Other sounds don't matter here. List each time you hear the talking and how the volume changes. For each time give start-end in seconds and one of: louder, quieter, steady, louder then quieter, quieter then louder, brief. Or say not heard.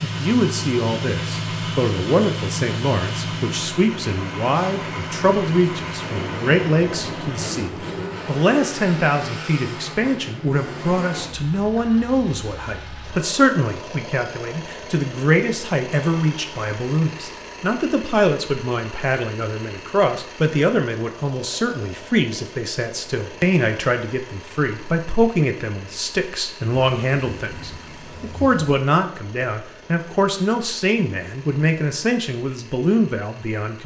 0.0-33.8 steady.